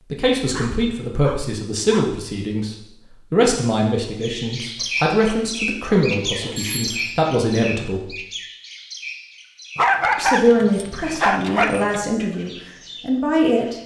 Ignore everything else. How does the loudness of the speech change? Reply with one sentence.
The loudness of the speech stays about the same.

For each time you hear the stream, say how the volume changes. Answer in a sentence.
The stream can't be heard in this clip.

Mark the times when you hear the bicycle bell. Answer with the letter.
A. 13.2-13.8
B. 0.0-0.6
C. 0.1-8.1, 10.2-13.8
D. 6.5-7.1
D.